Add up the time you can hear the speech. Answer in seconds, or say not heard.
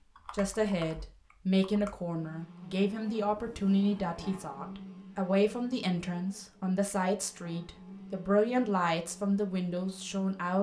10 s.